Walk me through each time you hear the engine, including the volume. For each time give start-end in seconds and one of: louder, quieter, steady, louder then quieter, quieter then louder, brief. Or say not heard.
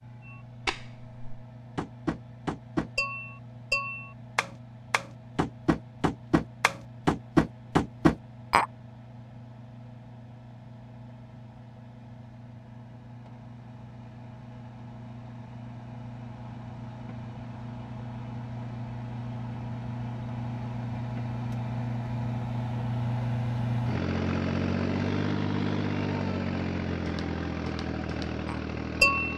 0.0-29.3 louder.